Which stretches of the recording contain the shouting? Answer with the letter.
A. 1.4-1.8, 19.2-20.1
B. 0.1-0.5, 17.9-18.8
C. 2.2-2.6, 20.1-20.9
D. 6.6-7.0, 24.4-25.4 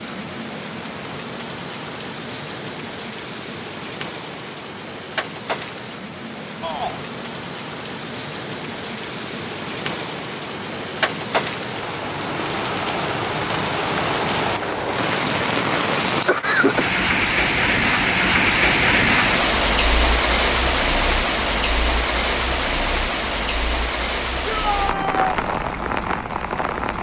D.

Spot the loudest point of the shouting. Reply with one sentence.
The loudest moment of the shouting is at 25 seconds.